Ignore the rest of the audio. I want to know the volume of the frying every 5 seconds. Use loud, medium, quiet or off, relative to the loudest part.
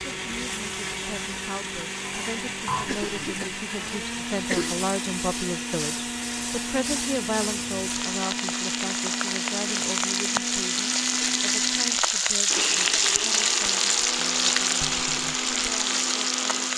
quiet, medium, loud, loud.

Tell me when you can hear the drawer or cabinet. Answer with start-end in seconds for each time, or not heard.
not heard.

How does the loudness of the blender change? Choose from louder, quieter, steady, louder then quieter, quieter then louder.
steady.